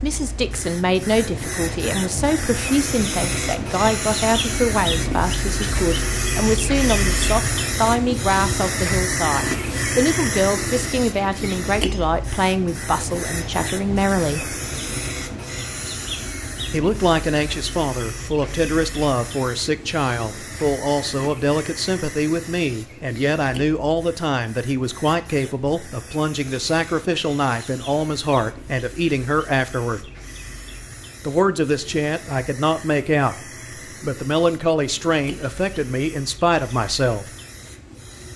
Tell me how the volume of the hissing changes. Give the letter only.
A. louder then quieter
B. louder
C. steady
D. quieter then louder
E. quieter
E.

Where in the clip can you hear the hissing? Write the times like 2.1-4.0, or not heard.
0.0-38.3.